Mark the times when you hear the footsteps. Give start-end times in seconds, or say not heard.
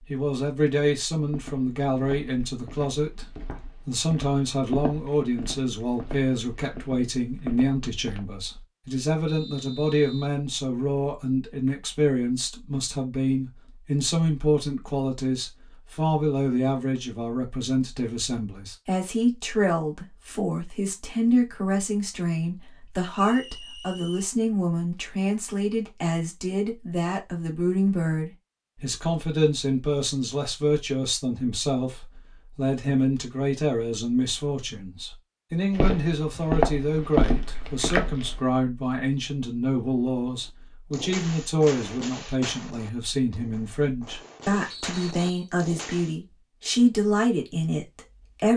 1.1-8.2, 35.8-38.4.